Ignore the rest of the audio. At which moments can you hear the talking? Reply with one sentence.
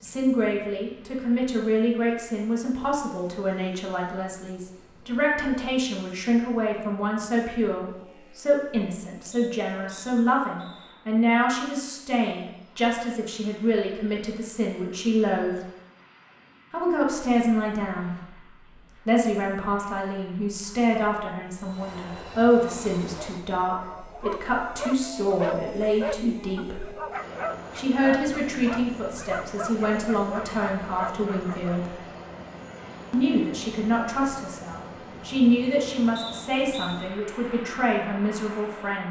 You can hear the talking from 0.0 to 15.6 s, from 16.7 to 26.9 s, from 27.8 to 31.9 s and from 33.1 to 39.0 s.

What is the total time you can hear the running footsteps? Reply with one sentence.
You can't hear the running footsteps here.